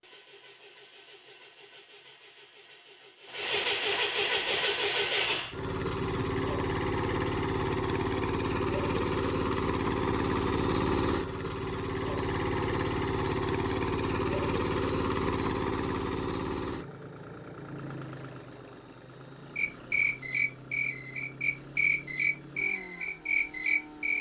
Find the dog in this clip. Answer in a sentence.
The dog can't be heard in this clip.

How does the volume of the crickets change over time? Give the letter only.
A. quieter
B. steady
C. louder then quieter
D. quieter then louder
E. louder
E.